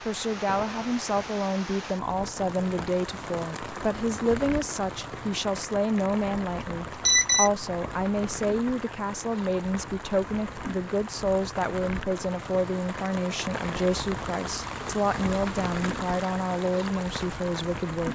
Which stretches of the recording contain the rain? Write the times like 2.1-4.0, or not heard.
0.0-18.1.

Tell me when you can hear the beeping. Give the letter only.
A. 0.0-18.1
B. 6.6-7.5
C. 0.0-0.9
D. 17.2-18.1
B.